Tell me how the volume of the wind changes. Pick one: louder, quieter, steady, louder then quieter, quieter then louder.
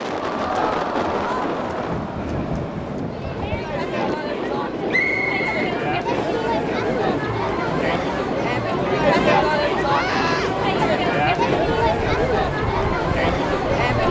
steady.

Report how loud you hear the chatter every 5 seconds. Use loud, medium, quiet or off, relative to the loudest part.
medium, loud, loud.